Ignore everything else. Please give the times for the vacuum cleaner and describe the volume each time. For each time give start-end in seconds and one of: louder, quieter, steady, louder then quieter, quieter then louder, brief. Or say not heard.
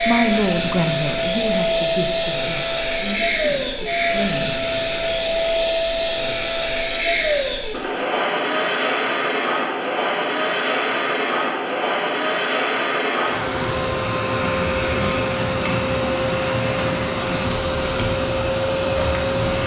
0.0-19.6 steady.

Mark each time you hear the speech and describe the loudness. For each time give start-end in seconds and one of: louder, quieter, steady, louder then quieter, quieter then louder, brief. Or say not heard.
0.1-4.5 quieter.